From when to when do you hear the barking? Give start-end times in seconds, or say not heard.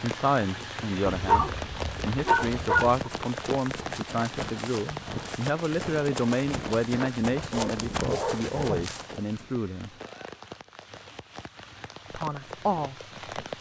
1.1-3.0, 7.5-8.8.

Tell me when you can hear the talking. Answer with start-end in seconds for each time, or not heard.
0.0-9.9, 12.1-13.5.